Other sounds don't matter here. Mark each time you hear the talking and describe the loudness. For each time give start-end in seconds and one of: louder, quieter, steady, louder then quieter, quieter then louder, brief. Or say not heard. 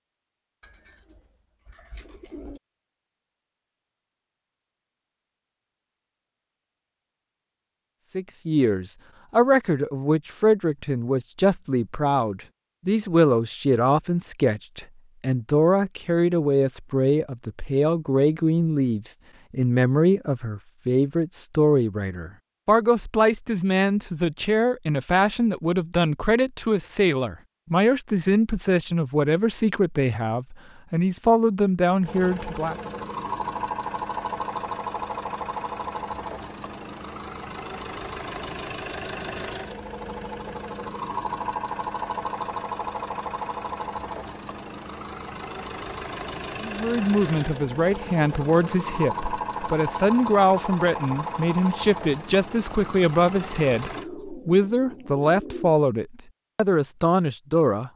8.2-32.8 steady
46.6-57.9 steady.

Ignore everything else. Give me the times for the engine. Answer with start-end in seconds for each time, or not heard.
32.0-54.0.